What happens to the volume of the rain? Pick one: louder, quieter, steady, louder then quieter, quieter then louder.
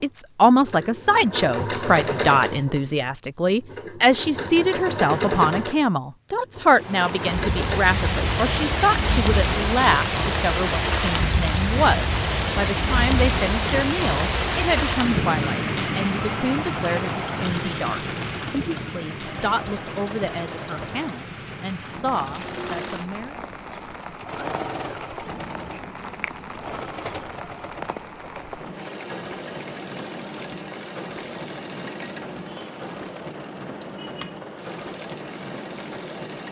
quieter.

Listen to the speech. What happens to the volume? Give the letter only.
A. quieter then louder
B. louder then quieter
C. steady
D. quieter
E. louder
D.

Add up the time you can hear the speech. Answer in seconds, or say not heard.
23 s.